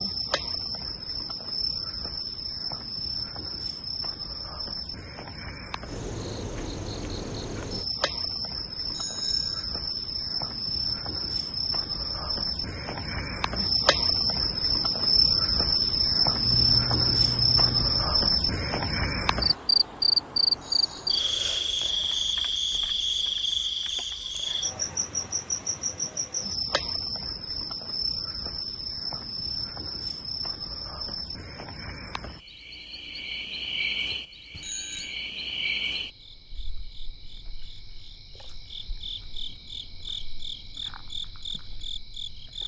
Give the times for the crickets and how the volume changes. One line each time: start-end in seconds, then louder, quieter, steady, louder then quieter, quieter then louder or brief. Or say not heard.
0.0-42.6 louder then quieter.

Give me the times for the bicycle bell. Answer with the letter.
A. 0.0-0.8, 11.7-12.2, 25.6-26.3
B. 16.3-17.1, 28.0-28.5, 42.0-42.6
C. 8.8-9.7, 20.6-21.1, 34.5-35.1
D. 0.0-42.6
C.